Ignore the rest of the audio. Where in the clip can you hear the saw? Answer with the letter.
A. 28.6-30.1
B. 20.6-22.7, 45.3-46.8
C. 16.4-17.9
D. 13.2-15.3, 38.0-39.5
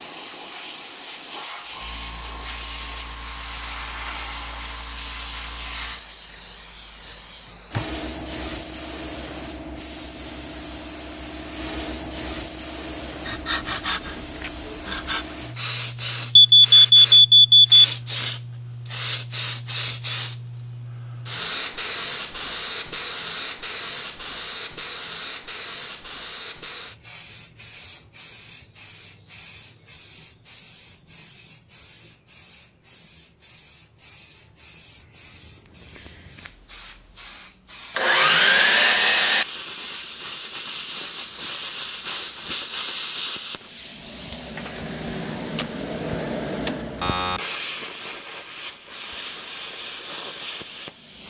D.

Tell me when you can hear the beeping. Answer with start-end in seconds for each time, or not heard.
16.4-17.9.